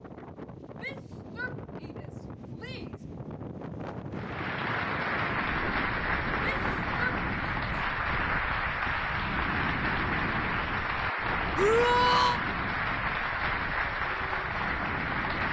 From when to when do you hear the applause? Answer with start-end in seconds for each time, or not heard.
4.1-15.4.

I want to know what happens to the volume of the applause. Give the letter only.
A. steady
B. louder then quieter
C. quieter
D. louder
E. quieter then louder
A.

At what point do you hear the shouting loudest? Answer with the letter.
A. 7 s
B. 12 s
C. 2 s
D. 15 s
B.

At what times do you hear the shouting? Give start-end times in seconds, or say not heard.
0.8-3.0, 6.4-7.7, 11.6-12.4.